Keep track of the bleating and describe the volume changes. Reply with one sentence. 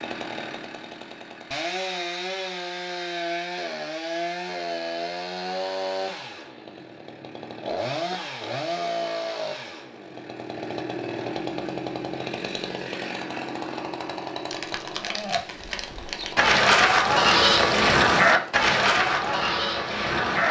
The volume of the bleating goes up, then down.